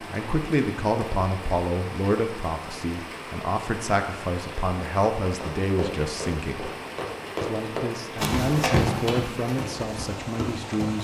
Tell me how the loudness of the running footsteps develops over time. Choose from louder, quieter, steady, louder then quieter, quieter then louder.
louder then quieter.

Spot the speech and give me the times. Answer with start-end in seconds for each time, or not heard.
0.0-6.7, 7.4-11.0.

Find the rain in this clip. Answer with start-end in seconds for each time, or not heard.
0.0-11.0.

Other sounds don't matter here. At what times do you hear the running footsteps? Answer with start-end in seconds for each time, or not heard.
5.4-11.0.